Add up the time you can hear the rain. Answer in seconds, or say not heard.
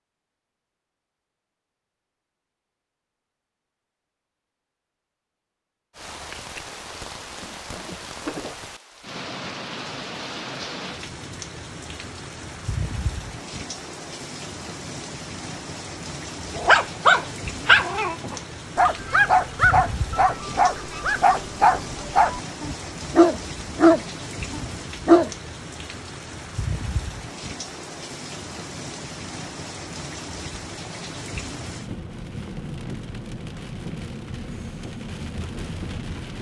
30 s.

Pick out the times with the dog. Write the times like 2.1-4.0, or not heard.
16.6-25.3.